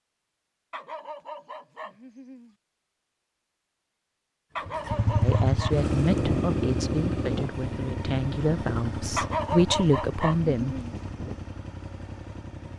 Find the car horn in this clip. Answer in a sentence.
You can't hear the car horn here.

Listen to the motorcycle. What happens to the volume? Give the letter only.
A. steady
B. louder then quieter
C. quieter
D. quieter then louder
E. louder
C.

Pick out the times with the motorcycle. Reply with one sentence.
The motorcycle can be heard from 4.7 to 12.7 s.